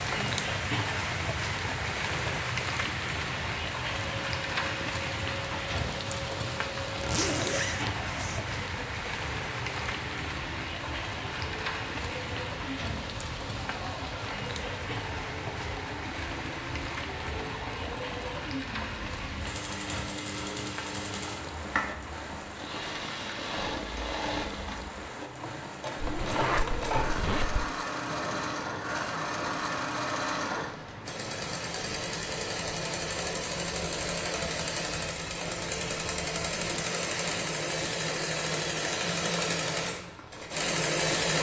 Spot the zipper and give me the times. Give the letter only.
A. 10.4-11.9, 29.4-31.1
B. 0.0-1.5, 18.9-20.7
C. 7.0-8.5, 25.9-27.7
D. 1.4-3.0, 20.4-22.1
C.